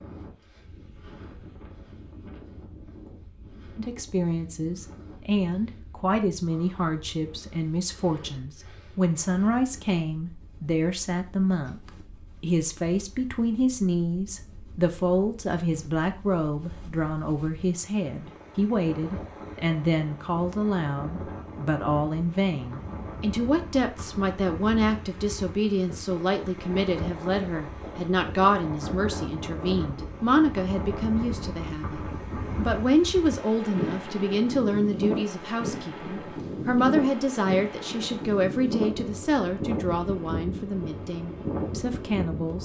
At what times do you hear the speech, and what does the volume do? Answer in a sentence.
You can hear the speech from 3.8 to 42.6 s, at a steady volume.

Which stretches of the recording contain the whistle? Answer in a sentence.
You can't hear the whistle here.